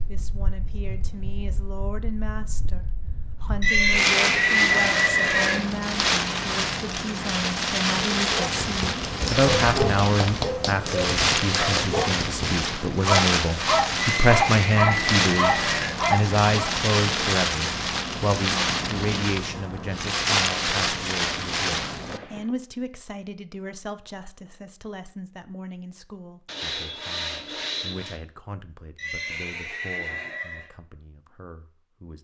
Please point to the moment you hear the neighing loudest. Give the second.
5 s.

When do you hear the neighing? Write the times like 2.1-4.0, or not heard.
3.6-5.7, 14.0-16.0, 28.9-30.7.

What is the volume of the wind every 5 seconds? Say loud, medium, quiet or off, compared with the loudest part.
medium, loud, loud, loud, loud, off, off.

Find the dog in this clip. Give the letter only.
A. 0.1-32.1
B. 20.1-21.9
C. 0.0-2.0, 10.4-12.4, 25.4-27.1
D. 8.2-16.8
D.